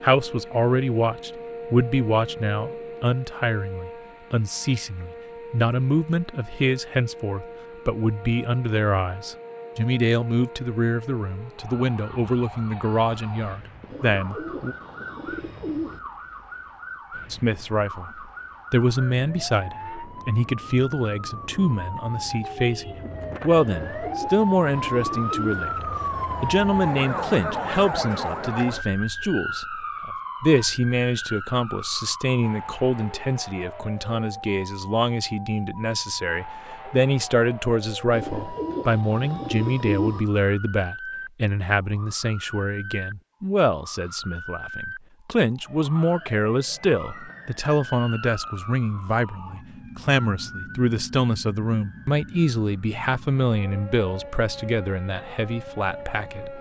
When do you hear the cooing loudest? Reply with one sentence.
The volume of the cooing peaks at 40 seconds.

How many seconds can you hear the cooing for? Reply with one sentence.
You can hear the cooing for 6 seconds altogether.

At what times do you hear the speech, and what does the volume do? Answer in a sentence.
You can hear the speech from 0.0 to 14.8 s, at a steady volume; and from 17.3 to 56.5 s, at a steady volume.